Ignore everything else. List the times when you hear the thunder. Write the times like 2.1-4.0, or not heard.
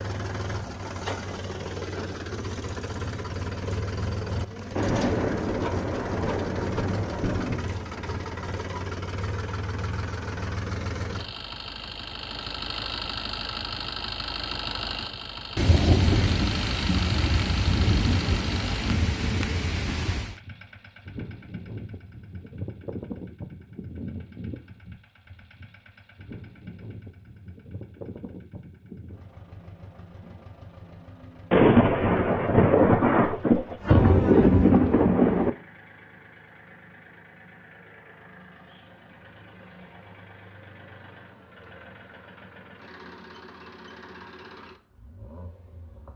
4.8-7.7, 15.6-20.4, 31.5-35.5.